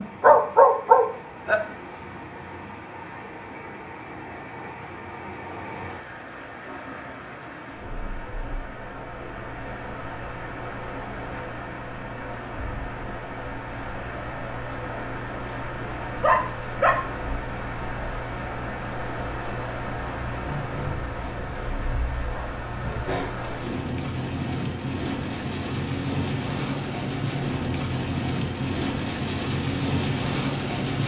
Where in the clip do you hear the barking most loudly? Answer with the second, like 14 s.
1 s.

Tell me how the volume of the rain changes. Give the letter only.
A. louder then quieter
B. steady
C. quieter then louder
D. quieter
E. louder
E.